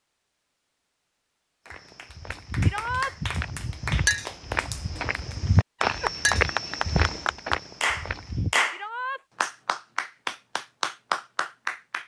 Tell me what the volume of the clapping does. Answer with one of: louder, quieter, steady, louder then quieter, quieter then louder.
louder.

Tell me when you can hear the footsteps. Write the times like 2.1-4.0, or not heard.
1.6-8.5.